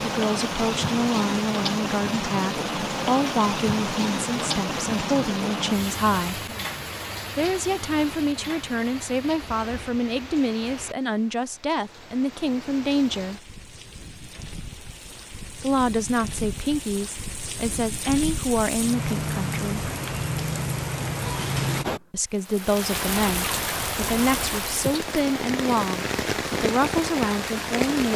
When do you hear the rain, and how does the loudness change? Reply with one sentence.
You can hear the rain from 0.0 to 28.1 s, getting quieter then louder.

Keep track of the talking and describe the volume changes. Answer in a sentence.
The loudness of the talking stays about the same.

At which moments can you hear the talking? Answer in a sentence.
You can hear the talking from 0.0 to 6.5 s, from 7.3 to 13.4 s, from 15.6 to 19.9 s and from 22.1 to 28.1 s.